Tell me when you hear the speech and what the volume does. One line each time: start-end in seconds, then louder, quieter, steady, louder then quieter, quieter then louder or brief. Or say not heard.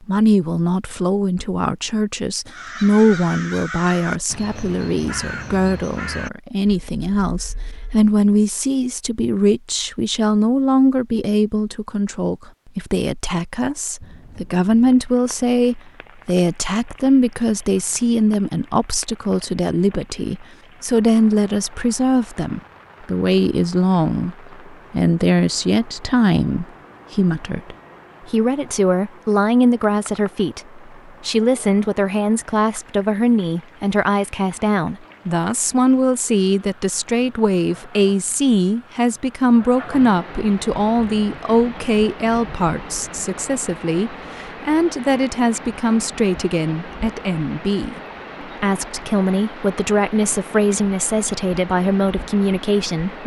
0.1-48.0 steady
48.6-53.2 steady.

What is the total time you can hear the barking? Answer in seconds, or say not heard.
not heard.